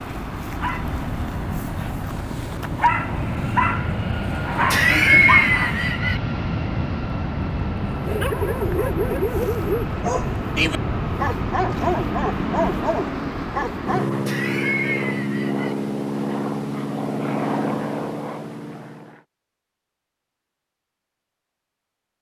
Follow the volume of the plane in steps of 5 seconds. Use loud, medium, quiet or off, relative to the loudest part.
loud, loud, loud, loud, off.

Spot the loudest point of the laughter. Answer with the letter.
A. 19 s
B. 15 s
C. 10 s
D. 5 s
D.